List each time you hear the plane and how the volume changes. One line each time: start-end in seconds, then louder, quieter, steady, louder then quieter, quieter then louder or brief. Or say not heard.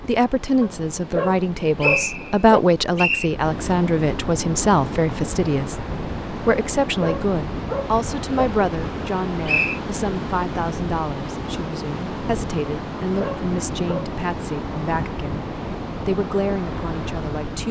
not heard.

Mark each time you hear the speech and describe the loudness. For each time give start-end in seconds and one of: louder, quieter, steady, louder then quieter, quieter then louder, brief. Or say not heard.
0.1-17.6 quieter.